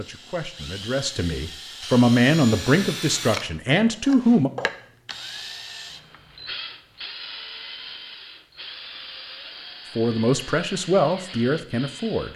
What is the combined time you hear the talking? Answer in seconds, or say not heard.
7 s.